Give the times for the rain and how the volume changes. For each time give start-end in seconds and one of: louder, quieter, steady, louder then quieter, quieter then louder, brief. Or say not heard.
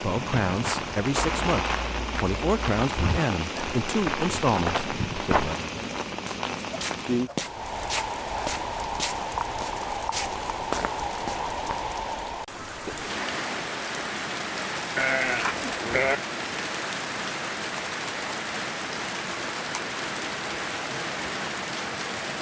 0.0-22.3 steady.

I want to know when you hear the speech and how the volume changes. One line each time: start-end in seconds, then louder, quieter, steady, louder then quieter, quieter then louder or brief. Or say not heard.
0.0-5.8 steady.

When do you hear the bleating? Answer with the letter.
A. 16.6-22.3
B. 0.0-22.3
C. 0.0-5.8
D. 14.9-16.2
D.